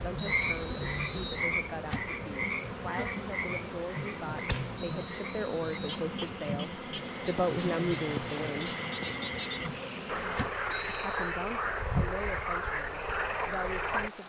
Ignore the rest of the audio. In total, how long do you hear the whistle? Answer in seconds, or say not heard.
3 s.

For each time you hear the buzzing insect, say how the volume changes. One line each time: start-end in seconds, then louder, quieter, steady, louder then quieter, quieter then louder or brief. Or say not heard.
0.0-10.6 steady.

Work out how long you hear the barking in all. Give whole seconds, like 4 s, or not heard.
not heard.